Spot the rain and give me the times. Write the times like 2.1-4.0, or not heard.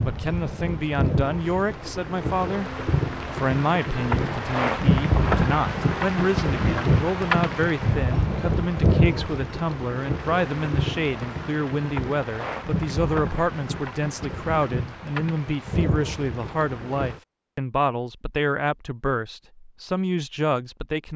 0.0-17.2.